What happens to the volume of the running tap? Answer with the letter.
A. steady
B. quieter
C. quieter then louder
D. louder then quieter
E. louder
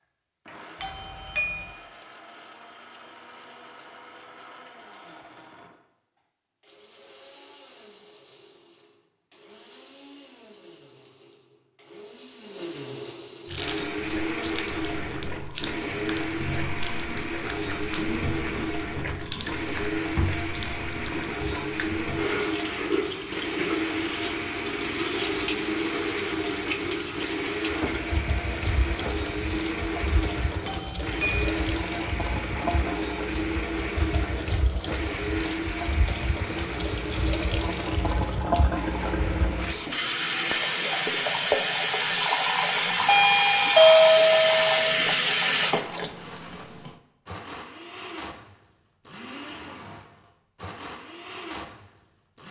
E.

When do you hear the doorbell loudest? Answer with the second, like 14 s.
44 s.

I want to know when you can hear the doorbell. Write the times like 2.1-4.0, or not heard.
0.8-1.8, 30.6-31.4, 43.0-44.9.